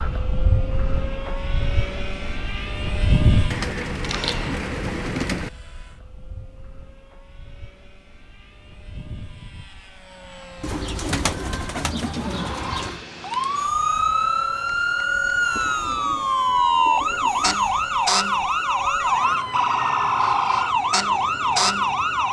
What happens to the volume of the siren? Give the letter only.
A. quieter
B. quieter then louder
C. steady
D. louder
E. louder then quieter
C.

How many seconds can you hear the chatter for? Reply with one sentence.
You can't hear the chatter here.